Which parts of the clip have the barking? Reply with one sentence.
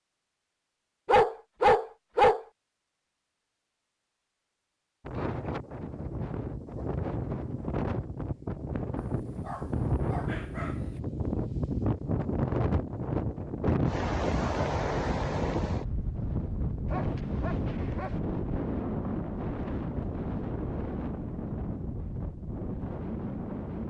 The barking can be heard from 1.1 to 2.5 s, from 8.9 to 11.0 s and from 16.9 to 18.2 s.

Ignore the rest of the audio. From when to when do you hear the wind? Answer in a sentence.
You can hear the wind from 5.0 to 23.8 s.